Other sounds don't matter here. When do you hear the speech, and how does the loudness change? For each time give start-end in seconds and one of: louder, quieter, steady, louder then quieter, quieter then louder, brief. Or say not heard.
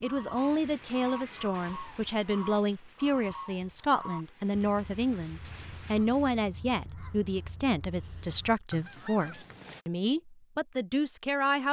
0.0-11.6 steady.